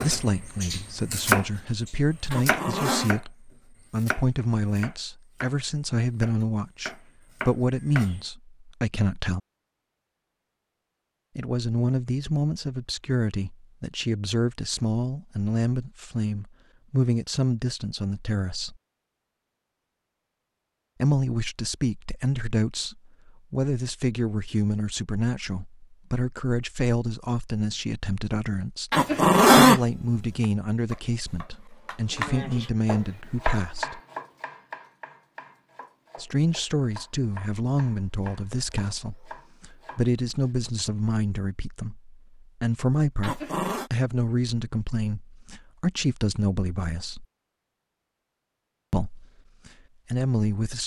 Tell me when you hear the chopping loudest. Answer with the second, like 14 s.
1 s.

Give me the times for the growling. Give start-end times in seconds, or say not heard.
2.3-3.1, 28.9-29.8, 43.2-43.9.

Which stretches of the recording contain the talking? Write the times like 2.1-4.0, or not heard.
0.0-9.4, 11.3-18.8, 21.0-28.9, 29.5-34.0, 36.1-47.2, 48.9-50.8.